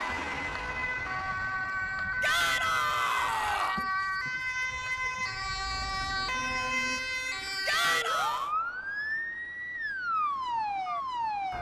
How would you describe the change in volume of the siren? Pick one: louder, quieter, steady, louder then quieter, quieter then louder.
steady.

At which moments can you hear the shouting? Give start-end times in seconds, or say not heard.
2.2-3.9, 7.7-8.6.